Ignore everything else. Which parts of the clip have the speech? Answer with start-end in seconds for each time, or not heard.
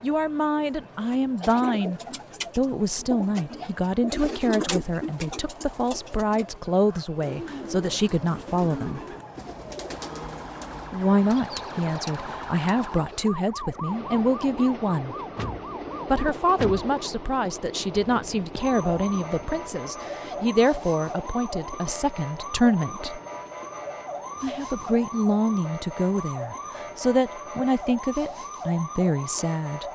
0.0-9.0, 10.9-15.2, 16.1-23.2, 24.4-29.8.